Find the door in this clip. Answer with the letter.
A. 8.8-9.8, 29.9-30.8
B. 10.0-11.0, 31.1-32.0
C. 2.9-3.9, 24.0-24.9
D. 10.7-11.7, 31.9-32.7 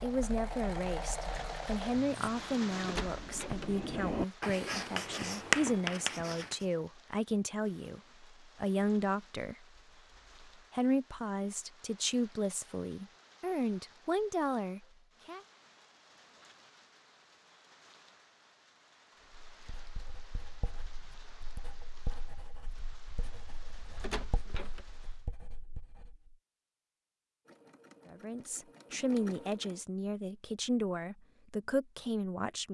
C.